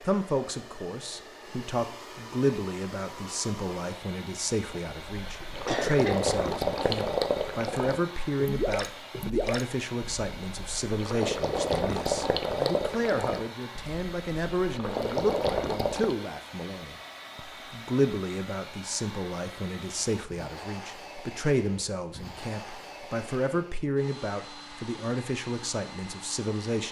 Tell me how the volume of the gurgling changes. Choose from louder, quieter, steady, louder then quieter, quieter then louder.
steady.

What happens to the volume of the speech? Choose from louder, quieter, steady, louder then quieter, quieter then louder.
steady.